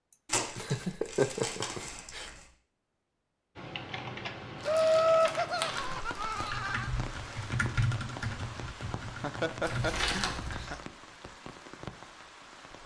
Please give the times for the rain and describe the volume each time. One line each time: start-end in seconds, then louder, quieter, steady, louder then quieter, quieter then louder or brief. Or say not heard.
5.8-12.8 steady.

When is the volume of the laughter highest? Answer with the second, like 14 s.
5 s.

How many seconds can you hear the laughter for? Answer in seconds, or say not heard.
6 s.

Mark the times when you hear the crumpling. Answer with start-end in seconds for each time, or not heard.
0.2-2.5, 4.6-6.5, 9.6-10.8.